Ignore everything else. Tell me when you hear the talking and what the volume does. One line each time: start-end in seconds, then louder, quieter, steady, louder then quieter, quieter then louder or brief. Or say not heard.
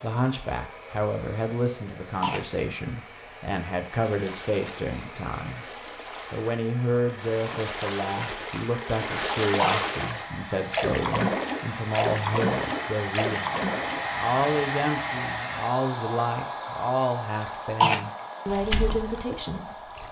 0.0-19.9 steady.